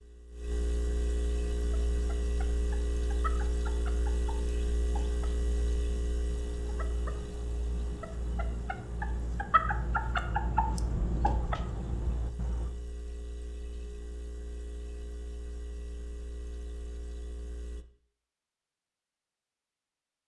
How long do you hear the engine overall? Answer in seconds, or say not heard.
18 s.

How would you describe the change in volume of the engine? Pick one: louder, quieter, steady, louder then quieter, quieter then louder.
quieter.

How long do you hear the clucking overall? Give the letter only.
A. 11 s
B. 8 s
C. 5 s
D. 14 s
A.